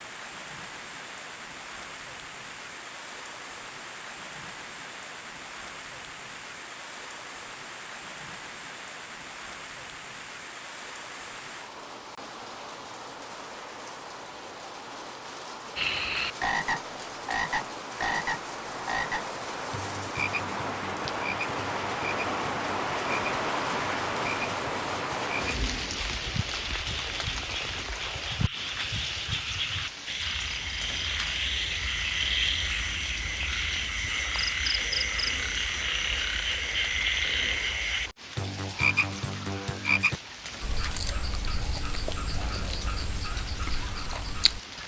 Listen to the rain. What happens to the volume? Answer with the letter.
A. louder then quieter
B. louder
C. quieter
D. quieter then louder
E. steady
A.